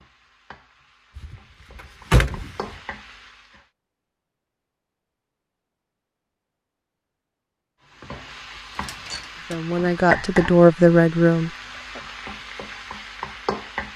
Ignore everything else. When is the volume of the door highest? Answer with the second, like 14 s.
2 s.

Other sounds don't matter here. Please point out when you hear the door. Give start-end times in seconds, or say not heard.
1.1-2.8, 8.8-9.6.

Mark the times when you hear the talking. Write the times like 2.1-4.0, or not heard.
9.5-11.5.